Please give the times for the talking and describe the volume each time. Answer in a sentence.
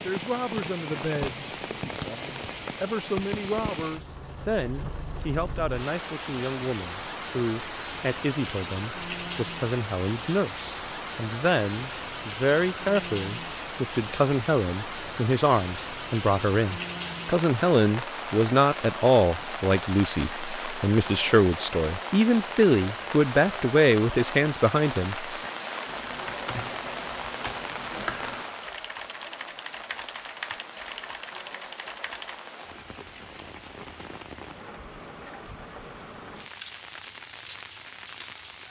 You can hear the talking from 0.0 to 25.2 s, getting louder.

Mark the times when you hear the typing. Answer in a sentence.
You can hear the typing from 25.9 to 32.4 s.